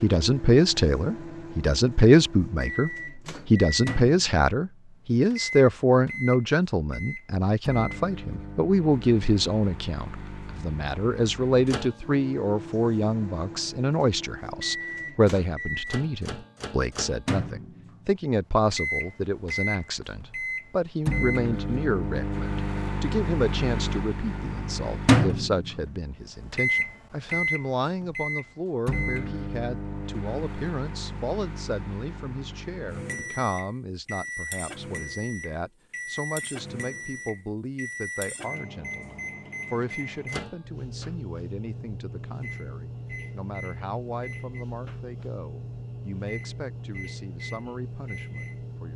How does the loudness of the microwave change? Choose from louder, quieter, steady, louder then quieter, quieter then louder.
louder then quieter.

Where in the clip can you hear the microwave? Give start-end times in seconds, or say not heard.
0.0-48.9.